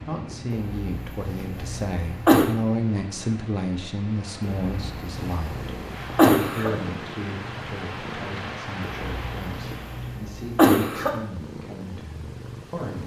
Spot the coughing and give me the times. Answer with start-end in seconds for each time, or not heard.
0.5-2.5, 4.7-6.7, 9.1-11.2.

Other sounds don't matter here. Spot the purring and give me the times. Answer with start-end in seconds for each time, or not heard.
5.2-13.0.